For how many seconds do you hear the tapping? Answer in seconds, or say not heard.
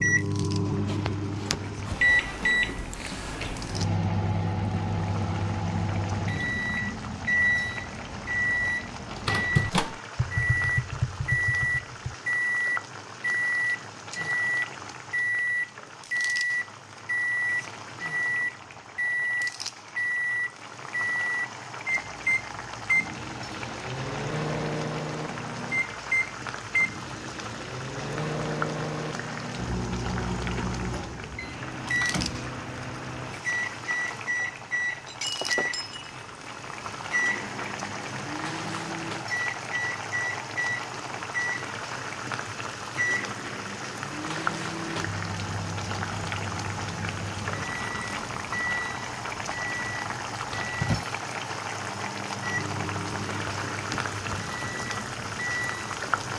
2 s.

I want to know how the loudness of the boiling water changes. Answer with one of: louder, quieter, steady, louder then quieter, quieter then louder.
louder.